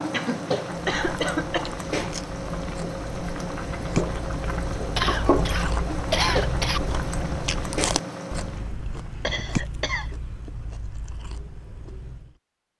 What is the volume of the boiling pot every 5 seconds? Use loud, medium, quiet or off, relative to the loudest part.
loud, loud, off.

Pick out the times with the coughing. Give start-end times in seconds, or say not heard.
0.1-1.8, 5.0-6.8, 9.2-10.1.